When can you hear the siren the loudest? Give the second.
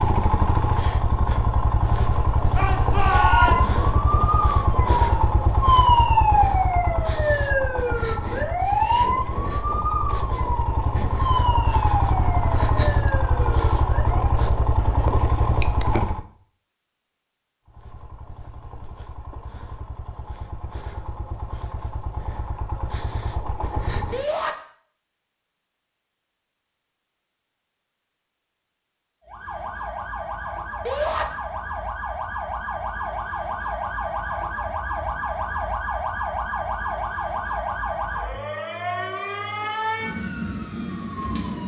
6 s.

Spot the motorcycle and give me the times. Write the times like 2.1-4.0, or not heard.
0.0-16.2, 17.6-24.2.